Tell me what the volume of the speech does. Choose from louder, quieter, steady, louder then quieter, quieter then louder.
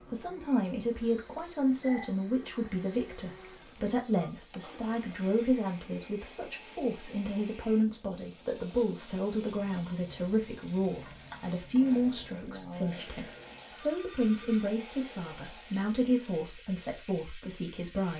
steady.